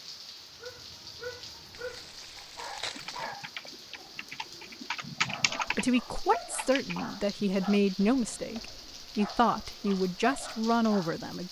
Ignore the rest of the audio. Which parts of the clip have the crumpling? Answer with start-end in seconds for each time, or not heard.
1.7-3.4.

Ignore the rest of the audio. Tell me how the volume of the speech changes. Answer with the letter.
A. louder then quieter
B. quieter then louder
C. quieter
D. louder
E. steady
E.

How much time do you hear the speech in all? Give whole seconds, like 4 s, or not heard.
6 s.